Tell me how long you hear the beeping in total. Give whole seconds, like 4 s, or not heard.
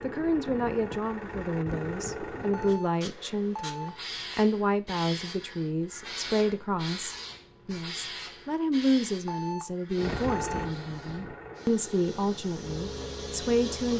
3 s.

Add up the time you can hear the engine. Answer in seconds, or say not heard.
7 s.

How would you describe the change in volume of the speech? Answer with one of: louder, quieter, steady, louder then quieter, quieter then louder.
steady.